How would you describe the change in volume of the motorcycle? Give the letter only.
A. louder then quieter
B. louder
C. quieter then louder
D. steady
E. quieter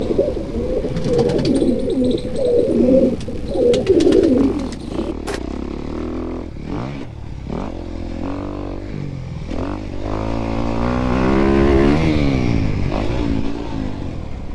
B.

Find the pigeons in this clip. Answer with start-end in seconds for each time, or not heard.
0.0-5.4.